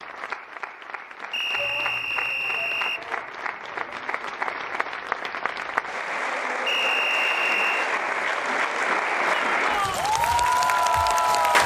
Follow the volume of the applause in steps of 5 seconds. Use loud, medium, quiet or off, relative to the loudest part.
quiet, medium, loud.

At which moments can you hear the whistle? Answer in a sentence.
You can hear the whistle from 1.3 to 3.0 s and from 6.7 to 7.9 s.